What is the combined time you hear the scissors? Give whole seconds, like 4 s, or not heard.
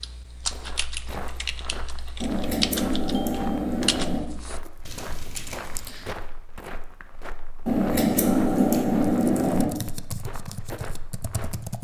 4 s.